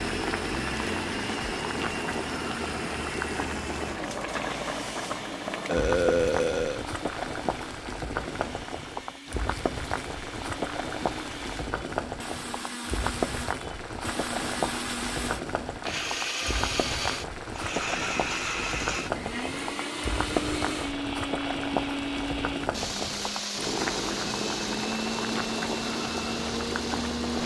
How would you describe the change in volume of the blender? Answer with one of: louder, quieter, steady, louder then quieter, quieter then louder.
quieter then louder.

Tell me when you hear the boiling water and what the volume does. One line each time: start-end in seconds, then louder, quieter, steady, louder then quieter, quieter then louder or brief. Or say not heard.
0.0-27.4 steady.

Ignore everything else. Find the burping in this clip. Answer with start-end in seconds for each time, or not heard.
5.7-6.8.